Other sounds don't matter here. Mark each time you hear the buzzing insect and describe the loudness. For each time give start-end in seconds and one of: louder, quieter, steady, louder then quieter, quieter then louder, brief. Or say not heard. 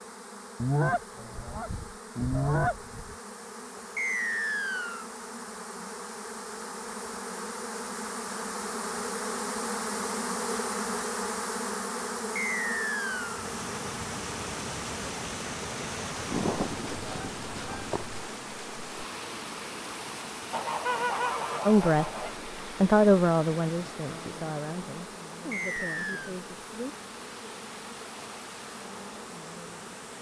0.0-30.1 louder then quieter.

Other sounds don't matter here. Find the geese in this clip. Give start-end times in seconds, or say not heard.
0.6-3.1, 16.3-18.2, 20.5-22.4.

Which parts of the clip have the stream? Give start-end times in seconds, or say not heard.
13.1-30.1.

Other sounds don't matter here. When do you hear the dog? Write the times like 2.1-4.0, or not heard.
not heard.